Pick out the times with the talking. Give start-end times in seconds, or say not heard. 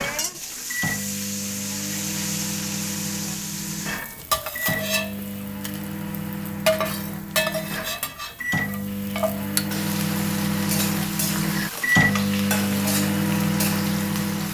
not heard.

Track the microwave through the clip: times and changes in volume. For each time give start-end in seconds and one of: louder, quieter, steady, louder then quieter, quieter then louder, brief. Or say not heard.
0.0-14.4 louder.